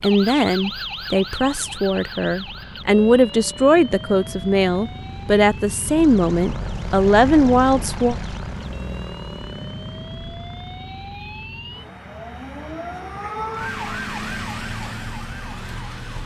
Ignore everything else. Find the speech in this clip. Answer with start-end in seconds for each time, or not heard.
0.0-8.2.